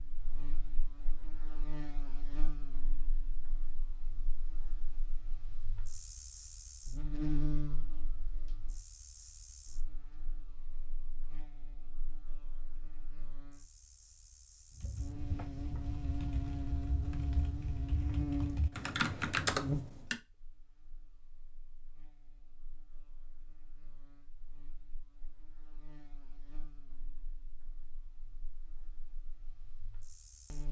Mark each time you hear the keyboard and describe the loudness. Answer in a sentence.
You can hear the keyboard from 14.8 to 20.2 s, getting louder.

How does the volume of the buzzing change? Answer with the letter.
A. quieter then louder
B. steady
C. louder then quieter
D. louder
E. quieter
C.